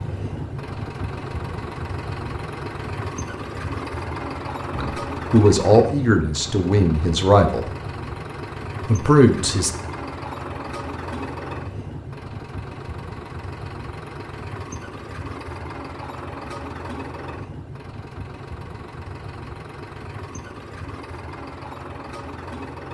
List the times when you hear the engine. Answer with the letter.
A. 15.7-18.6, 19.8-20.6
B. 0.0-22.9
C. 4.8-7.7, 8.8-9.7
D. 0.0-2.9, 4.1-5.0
B.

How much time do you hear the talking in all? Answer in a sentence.
The talking can be heard for 4 seconds in total.